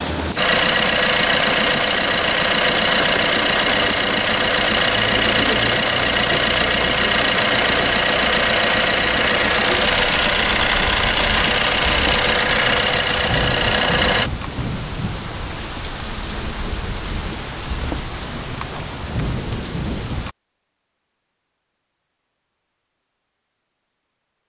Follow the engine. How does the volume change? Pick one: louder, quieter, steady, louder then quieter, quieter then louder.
steady.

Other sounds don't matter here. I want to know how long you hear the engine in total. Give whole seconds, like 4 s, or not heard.
14 s.